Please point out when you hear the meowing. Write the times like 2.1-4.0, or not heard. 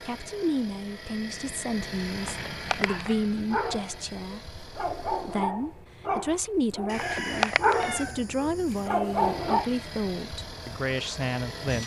2.2-3.0, 7.0-8.1.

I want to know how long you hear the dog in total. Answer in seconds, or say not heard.
7 s.